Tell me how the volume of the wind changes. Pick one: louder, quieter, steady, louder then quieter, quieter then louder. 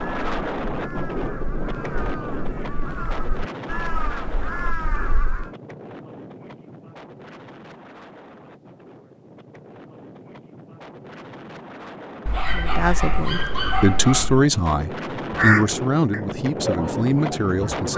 quieter then louder.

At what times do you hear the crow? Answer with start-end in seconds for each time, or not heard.
0.0-5.5, 15.2-17.9.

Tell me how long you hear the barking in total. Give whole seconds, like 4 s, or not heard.
2 s.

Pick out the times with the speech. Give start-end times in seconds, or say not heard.
12.6-17.9.